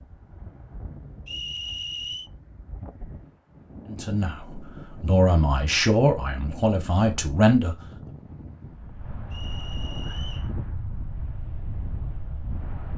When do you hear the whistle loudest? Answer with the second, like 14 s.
2 s.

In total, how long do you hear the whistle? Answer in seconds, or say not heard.
2 s.